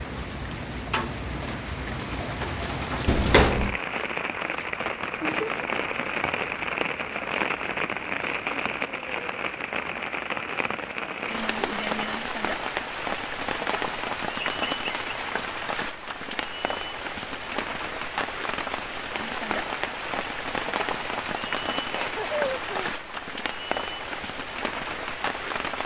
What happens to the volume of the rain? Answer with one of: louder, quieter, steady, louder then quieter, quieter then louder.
steady.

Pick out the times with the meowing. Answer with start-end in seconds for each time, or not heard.
3.0-3.8.